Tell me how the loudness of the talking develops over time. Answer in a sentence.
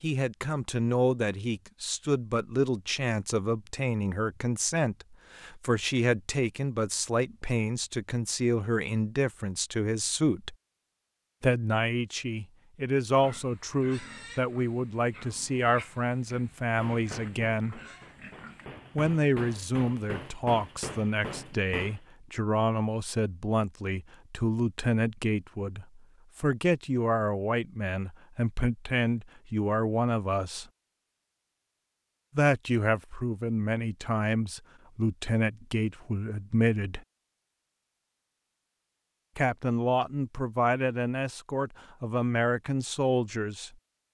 The volume of the talking stays about the same.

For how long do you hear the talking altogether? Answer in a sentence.
You can hear the talking for 38 seconds altogether.